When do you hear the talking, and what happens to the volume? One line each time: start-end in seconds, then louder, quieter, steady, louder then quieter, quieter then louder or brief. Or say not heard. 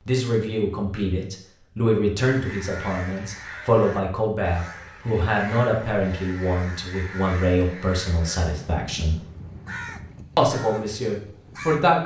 0.1-9.2 steady
10.3-12.0 brief.